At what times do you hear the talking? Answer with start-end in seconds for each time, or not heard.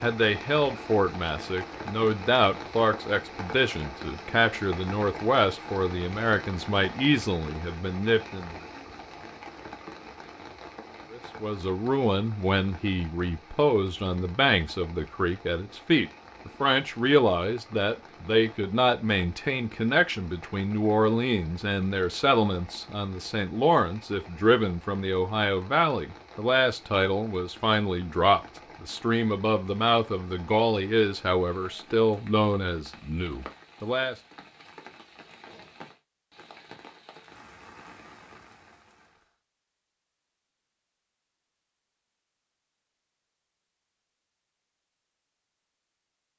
0.0-8.6, 11.1-34.1.